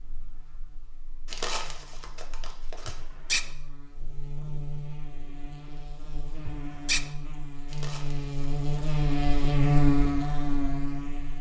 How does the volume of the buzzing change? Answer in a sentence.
The loudness of the buzzing goes up.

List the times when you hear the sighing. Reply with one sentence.
The sighing can be heard from 2.9 to 3.5 s and from 6.5 to 7.0 s.